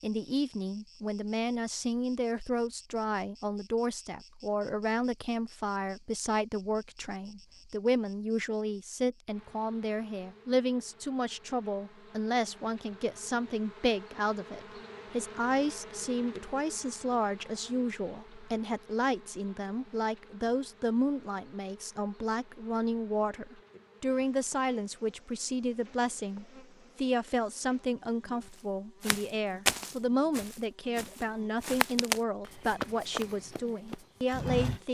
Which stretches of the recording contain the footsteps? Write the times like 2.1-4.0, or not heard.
29.0-34.8.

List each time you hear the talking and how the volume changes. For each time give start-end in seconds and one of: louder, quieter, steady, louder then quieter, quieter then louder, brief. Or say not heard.
0.0-34.9 steady.